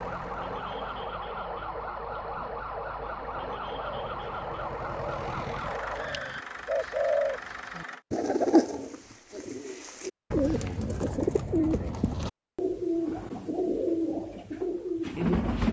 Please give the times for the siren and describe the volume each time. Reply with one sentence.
You can hear the siren from 0.0 to 6.5 s, at a steady volume.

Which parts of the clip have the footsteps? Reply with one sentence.
The footsteps can't be heard in this clip.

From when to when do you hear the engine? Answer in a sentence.
You can hear the engine from 0.0 to 8.1 s.